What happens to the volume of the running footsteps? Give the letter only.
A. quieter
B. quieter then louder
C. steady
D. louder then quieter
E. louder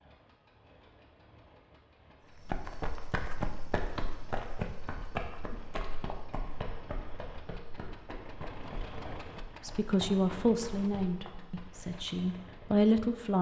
A.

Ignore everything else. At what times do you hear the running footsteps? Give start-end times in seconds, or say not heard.
2.4-12.3.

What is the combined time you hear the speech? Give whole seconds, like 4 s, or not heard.
4 s.